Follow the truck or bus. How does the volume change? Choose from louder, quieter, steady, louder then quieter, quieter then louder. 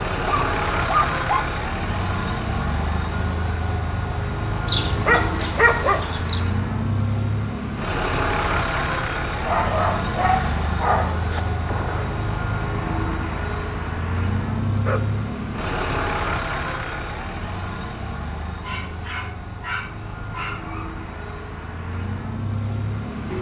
quieter.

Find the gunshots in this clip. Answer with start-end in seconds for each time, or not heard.
11.7-12.2.